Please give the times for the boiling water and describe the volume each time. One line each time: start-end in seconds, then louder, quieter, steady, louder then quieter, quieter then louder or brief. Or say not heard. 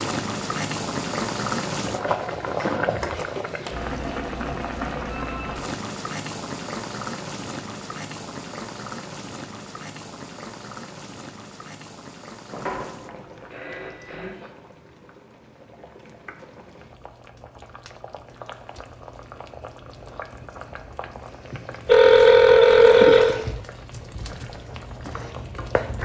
0.0-26.0 quieter then louder.